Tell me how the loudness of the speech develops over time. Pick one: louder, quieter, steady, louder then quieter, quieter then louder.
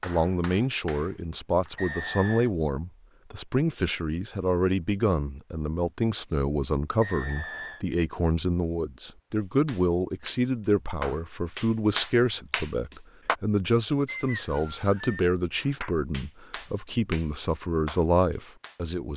steady.